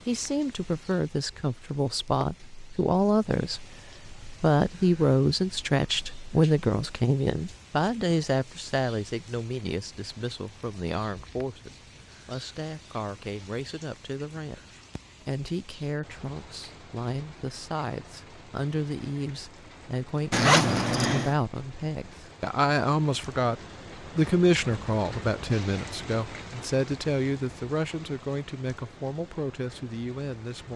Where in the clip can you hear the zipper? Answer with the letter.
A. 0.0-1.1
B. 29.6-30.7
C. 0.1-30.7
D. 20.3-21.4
D.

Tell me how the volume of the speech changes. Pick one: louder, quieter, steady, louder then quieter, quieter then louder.
quieter then louder.